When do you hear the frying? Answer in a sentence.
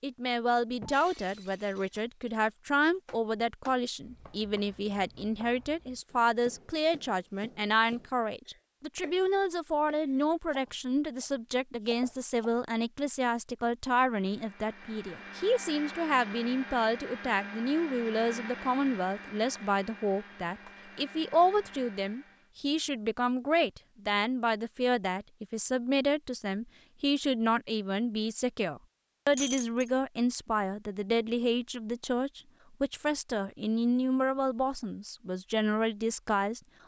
You can't hear the frying here.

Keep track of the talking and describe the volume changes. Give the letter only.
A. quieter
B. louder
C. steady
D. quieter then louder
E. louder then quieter
C.